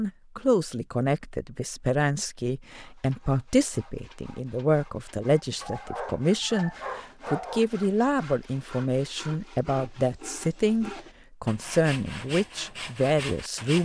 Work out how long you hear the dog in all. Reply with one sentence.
You can hear the dog for 2 seconds altogether.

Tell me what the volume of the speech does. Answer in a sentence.
The volume of the speech stays about the same.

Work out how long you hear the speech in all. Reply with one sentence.
The speech can be heard for 14 seconds in total.